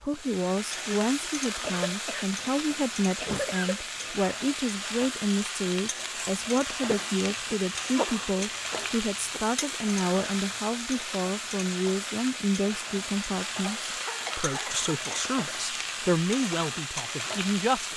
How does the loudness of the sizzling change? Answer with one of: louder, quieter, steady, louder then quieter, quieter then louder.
steady.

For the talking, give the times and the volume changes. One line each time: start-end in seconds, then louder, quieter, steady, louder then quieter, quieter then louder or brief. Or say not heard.
0.0-17.9 steady.